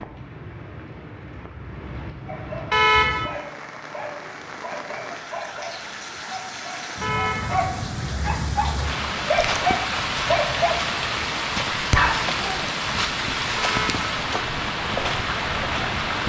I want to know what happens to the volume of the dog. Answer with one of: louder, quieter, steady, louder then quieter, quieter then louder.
louder.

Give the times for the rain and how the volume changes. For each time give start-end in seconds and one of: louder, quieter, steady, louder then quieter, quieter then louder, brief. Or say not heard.
0.0-16.2 louder.